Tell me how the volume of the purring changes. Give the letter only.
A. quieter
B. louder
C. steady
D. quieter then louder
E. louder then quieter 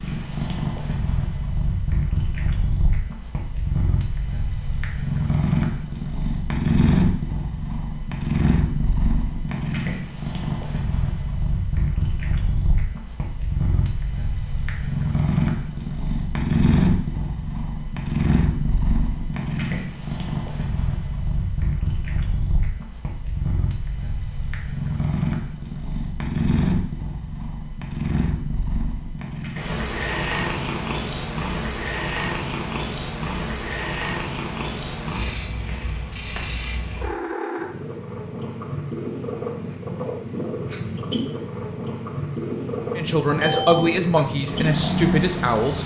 C.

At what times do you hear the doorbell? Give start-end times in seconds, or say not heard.
43.4-44.0.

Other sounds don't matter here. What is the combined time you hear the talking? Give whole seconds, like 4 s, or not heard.
3 s.